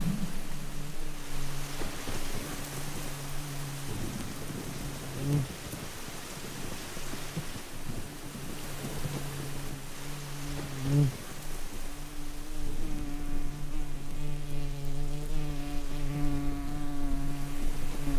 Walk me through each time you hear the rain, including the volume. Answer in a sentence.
You can hear the rain from 0.0 to 18.1 s, getting quieter.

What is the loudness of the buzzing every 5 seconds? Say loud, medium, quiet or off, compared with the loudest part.
medium, loud, loud, loud.